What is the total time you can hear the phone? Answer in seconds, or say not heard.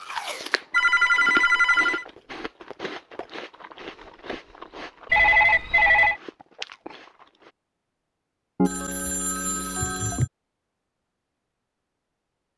4 s.